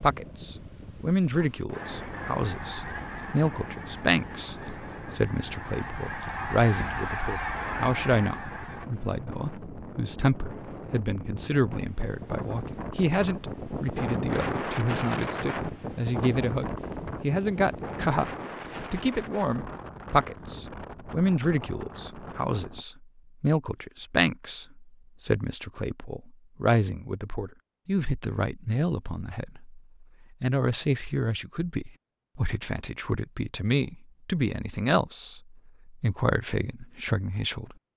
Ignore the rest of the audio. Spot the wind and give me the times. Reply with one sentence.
You can hear the wind from 0.0 to 22.9 s.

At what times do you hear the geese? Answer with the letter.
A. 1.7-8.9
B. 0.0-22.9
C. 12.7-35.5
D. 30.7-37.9
A.